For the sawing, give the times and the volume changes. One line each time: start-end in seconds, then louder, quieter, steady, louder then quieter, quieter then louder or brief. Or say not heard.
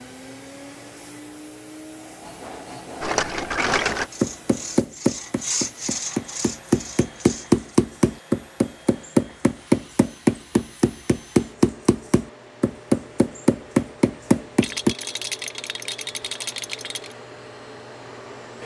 1.9-7.7 louder then quieter.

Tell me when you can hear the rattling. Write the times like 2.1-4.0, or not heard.
3.0-4.1, 14.6-17.1.